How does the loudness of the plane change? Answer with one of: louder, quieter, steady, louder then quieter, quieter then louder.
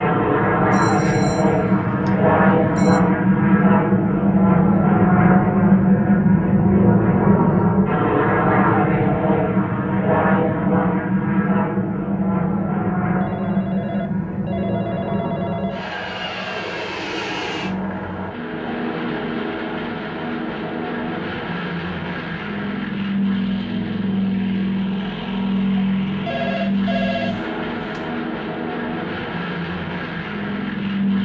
quieter.